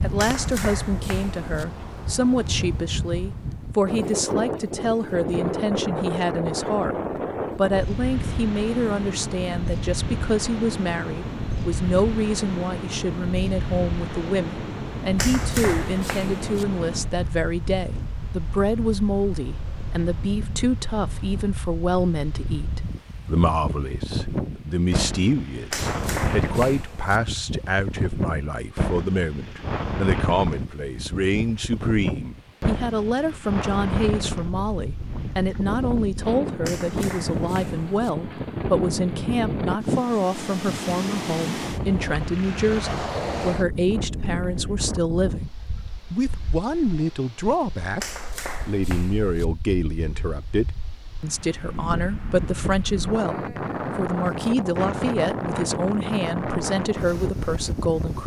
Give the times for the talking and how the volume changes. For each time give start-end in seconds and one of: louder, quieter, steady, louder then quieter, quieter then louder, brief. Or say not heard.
0.0-7.0 steady
7.5-45.5 steady
46.1-58.2 steady.